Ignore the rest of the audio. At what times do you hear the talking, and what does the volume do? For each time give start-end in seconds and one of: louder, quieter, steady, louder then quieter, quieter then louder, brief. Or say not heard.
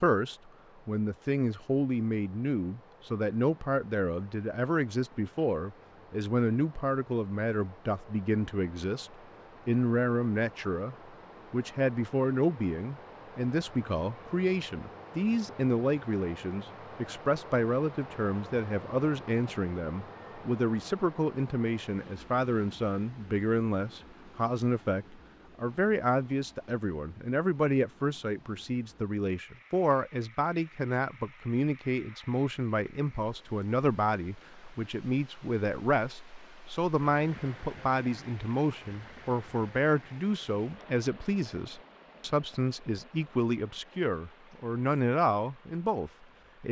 0.0-46.6 steady.